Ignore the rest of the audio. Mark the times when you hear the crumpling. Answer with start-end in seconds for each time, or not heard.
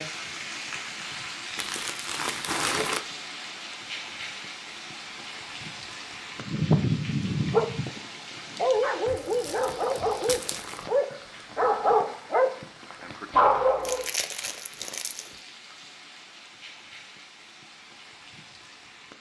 1.6-3.0, 9.1-10.8, 13.8-15.3.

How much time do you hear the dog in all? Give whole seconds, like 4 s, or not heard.
8 s.